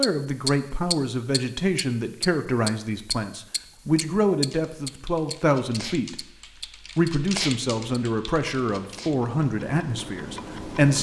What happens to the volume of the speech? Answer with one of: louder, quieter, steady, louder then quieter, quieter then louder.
steady.